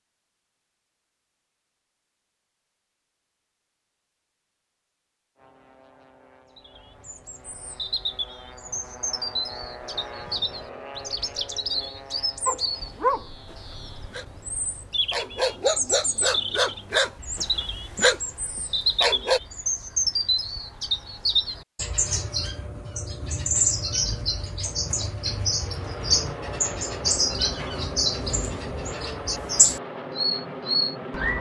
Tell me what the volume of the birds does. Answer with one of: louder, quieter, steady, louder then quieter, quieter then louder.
louder.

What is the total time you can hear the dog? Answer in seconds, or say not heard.
6 s.